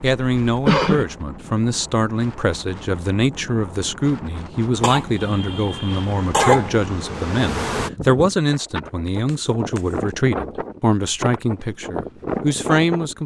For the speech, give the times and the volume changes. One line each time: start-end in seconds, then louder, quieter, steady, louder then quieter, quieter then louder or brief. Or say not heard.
0.0-13.2 steady.